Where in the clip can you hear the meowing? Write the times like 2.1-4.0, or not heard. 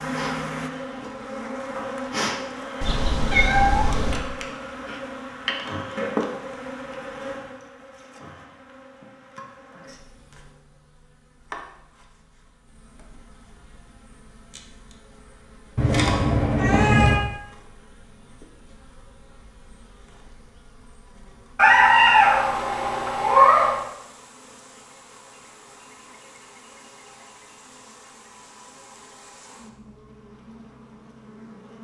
2.8-4.2, 15.8-17.2, 21.6-23.9.